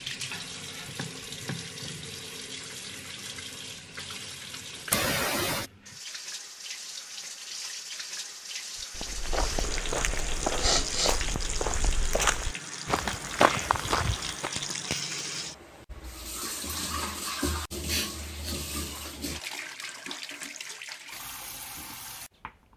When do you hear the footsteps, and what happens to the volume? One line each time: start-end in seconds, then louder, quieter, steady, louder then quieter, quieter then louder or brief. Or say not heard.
8.8-14.8 louder.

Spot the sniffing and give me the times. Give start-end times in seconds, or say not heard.
4.9-5.7, 10.6-11.2, 17.9-18.6.